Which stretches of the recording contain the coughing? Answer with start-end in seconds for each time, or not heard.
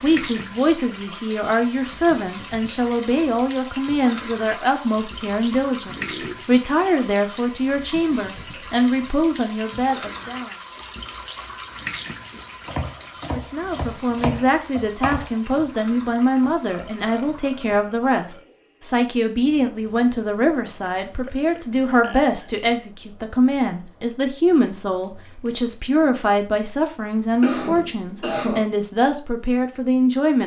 27.4-28.6.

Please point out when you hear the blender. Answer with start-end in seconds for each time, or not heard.
not heard.